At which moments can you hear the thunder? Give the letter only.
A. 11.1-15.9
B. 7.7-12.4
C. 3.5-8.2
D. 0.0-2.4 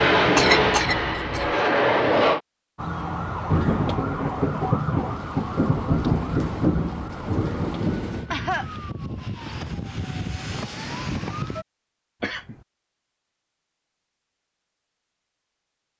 C.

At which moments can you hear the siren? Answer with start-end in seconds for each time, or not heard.
2.8-11.7.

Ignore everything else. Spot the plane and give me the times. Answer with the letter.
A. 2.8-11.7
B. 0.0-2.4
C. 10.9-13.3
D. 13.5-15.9
B.